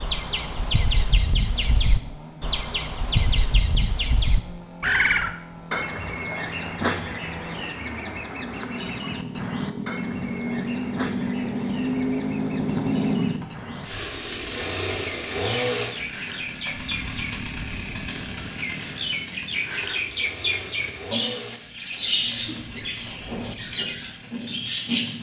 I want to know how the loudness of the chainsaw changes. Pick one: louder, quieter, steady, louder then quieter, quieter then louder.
louder then quieter.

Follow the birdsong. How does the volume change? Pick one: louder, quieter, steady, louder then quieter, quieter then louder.
quieter then louder.